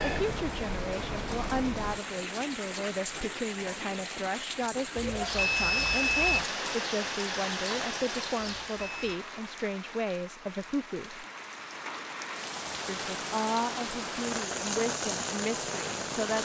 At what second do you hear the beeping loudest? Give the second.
6 s.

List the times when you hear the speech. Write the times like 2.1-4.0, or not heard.
0.0-11.2, 12.8-16.4.